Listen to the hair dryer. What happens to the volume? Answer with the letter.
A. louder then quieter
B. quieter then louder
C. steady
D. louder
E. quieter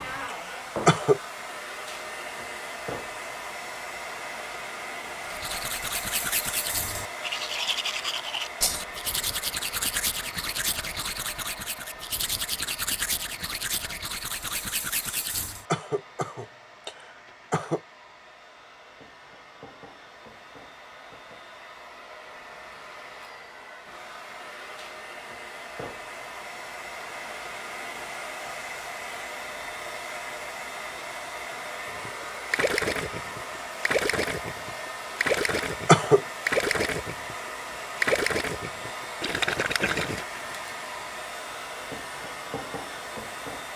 B.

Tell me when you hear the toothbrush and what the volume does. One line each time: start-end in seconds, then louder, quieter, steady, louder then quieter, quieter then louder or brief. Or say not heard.
5.2-15.7 steady.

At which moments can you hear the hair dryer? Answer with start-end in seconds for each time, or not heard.
0.0-43.7.